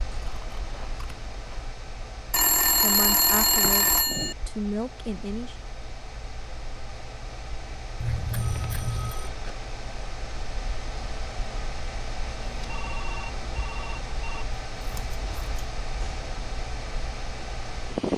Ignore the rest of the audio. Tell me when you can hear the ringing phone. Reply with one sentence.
You can hear the ringing phone from 2.3 to 4.3 s, from 8.3 to 9.7 s and from 12.4 to 14.4 s.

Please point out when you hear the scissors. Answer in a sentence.
You can hear the scissors from 0.1 to 1.8 s, from 8.0 to 9.2 s and from 14.8 to 15.6 s.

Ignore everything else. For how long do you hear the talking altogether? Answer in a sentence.
You can hear the talking for 3 seconds altogether.